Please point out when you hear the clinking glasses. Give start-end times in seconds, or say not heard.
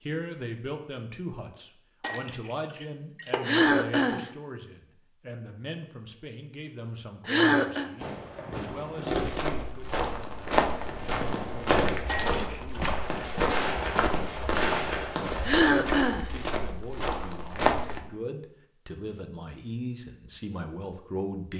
2.0-3.4, 12.1-12.9.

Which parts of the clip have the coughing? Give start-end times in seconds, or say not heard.
3.5-4.2, 7.2-7.9, 15.4-16.2.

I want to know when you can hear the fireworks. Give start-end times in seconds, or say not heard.
8.0-15.7.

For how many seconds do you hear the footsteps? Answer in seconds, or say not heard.
9 s.